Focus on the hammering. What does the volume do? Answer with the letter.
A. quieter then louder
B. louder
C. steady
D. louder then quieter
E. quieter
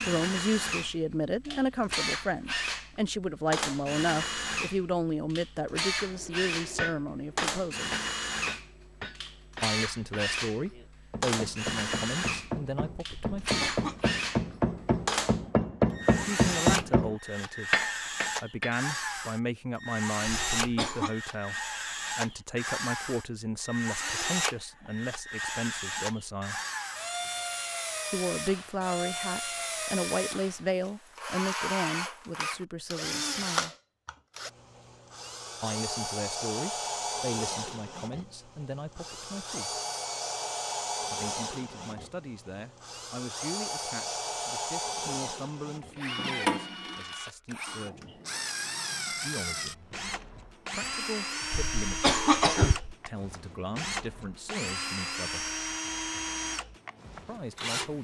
A.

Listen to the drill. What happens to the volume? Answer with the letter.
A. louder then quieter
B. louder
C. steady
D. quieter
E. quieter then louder
C.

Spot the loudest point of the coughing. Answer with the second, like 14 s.
52 s.